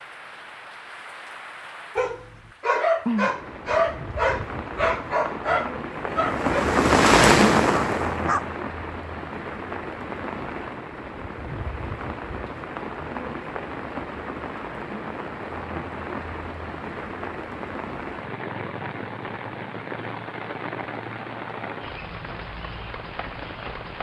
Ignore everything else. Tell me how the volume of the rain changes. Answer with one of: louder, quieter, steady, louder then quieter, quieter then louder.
louder then quieter.